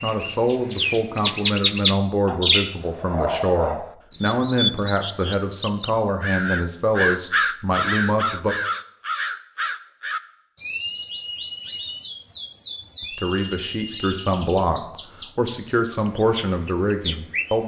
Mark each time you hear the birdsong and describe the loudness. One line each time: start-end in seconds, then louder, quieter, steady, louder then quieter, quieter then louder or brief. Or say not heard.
0.0-17.6 quieter.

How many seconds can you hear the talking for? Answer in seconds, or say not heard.
13 s.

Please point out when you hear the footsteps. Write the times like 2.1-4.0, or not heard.
not heard.